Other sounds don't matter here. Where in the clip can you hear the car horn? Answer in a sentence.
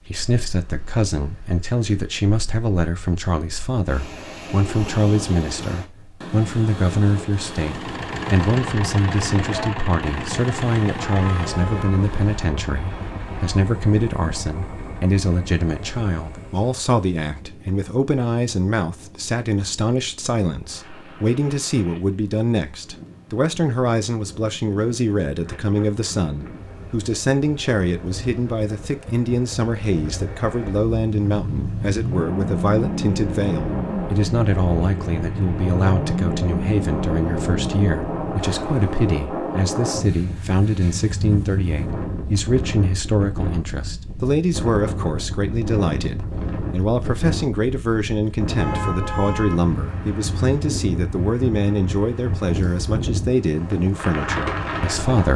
The car horn can be heard from 11.2 to 12.0 s and from 48.5 to 49.5 s.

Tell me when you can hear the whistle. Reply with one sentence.
The whistle can't be heard in this clip.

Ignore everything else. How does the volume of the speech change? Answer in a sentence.
The volume of the speech stays about the same.